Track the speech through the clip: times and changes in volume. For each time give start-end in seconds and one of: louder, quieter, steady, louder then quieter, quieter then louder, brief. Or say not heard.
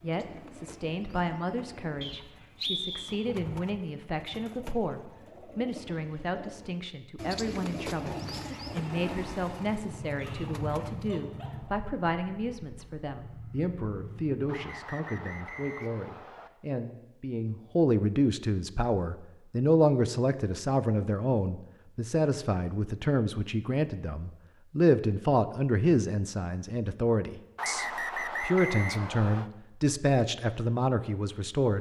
0.0-31.7 louder.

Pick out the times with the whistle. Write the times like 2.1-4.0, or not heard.
2.0-3.2, 14.4-16.5, 27.6-29.5.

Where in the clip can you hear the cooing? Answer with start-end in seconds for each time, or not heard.
0.0-11.2.